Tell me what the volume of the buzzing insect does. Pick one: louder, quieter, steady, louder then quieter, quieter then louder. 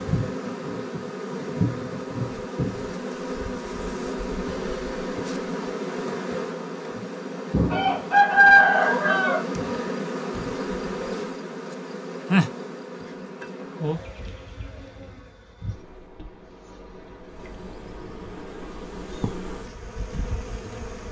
quieter.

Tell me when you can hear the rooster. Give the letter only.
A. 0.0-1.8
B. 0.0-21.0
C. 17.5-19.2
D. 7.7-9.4
D.